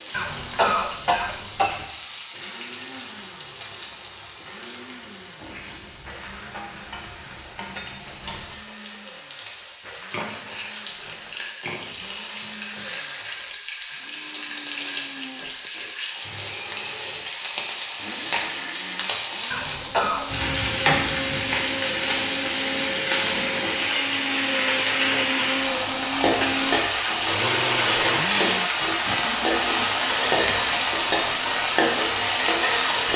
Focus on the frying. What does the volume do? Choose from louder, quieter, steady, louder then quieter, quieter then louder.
louder.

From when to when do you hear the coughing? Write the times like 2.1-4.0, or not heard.
0.1-1.9, 19.5-20.2.